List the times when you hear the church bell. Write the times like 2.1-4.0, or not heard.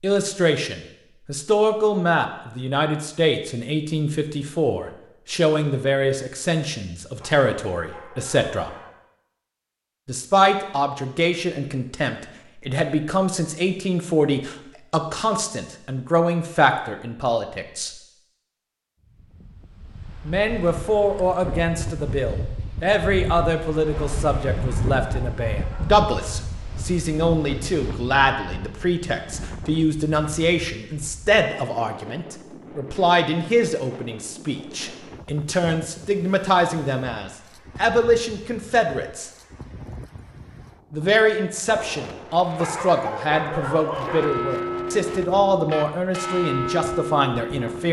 44.0-47.8.